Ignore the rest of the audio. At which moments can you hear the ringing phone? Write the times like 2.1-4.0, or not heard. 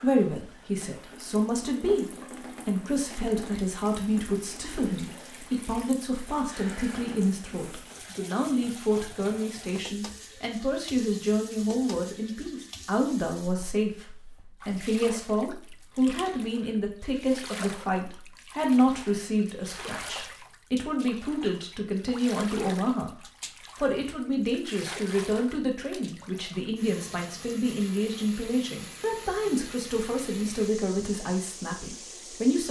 not heard.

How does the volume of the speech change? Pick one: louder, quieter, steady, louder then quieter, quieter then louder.
steady.